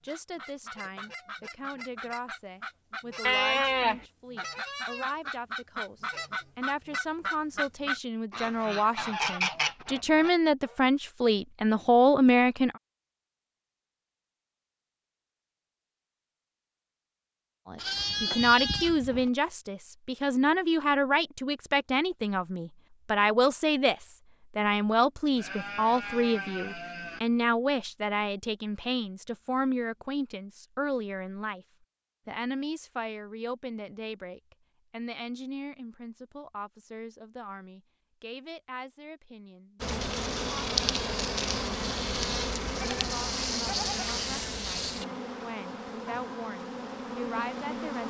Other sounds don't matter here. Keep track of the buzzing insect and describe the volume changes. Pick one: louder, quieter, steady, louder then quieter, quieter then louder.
quieter.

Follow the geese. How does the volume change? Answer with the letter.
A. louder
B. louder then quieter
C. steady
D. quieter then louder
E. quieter
A.